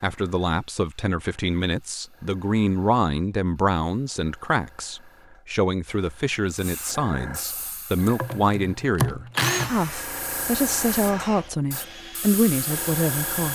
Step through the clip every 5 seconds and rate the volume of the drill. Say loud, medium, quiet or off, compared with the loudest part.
off, loud, quiet.